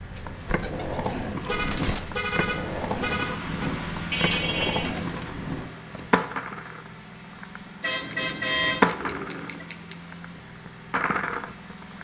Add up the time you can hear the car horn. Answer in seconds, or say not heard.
4 s.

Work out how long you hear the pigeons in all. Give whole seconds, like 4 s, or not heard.
5 s.